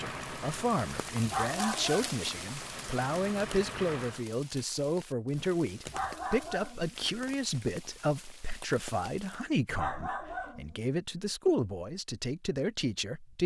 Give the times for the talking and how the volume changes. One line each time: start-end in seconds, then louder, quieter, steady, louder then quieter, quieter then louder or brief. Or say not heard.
0.0-13.4 steady.